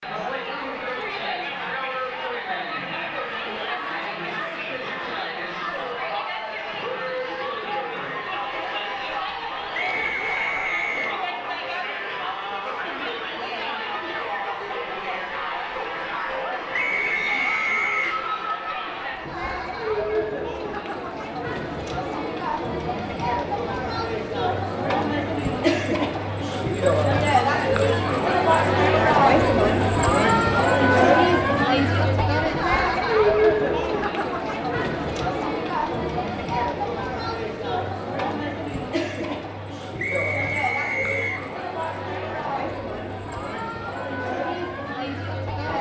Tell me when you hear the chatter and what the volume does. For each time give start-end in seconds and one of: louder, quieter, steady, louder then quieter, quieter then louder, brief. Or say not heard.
0.0-45.7 louder then quieter.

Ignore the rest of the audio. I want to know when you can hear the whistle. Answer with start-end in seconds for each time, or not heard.
9.7-11.2, 16.7-18.2, 40.0-41.5.